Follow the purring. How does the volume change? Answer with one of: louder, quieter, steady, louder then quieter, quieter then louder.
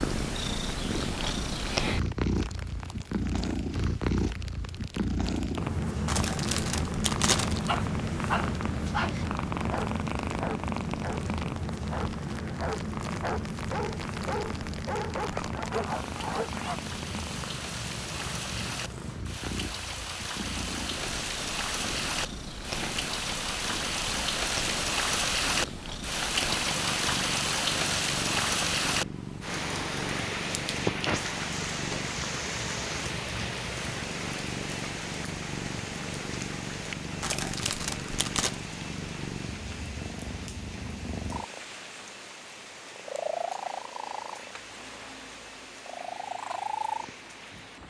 quieter.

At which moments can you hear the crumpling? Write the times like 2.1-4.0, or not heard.
6.0-7.8, 37.2-38.5.